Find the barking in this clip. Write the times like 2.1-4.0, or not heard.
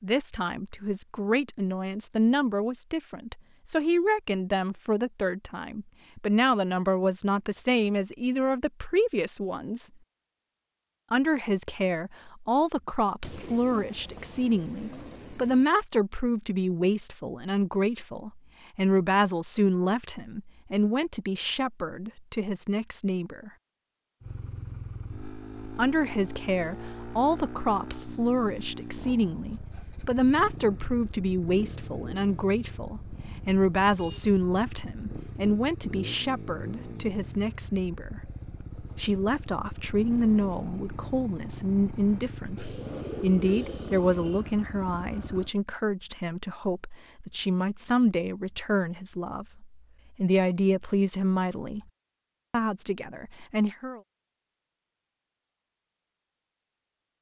not heard.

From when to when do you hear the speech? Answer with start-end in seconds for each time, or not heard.
0.0-9.9, 11.1-23.5, 25.8-38.2, 39.0-51.8, 52.5-54.0.